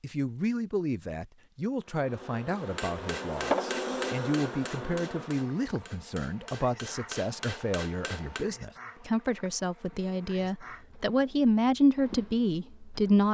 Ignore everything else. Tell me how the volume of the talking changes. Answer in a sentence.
The volume of the talking goes up.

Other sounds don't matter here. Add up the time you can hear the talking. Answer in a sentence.
The talking can be heard for 13 seconds in total.